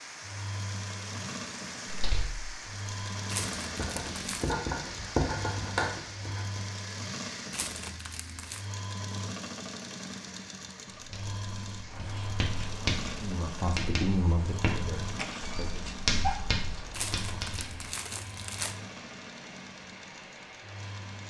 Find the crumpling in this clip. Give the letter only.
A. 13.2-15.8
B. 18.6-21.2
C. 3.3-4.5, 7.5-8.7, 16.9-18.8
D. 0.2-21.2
C.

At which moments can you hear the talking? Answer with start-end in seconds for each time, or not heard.
13.2-15.8.